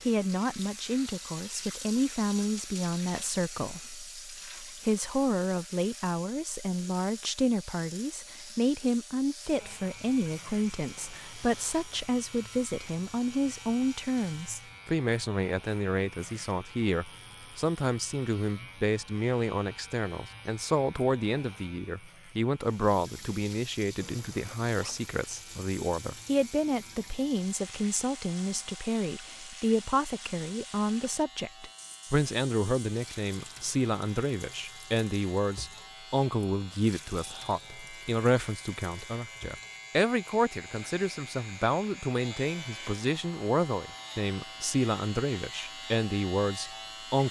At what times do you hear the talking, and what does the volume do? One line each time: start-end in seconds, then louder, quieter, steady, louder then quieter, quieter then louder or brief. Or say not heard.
0.1-47.2 steady.